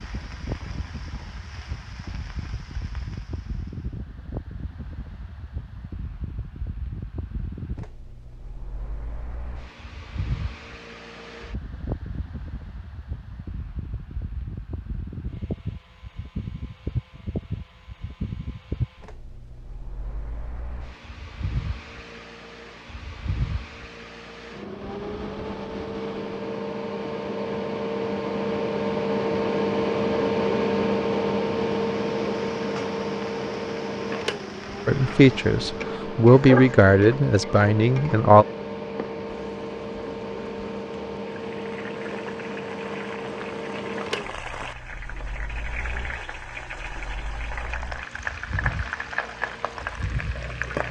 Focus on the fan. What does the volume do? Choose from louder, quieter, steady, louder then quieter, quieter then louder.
louder then quieter.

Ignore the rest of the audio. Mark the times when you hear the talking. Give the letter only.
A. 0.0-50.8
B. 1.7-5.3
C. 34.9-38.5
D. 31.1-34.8
C.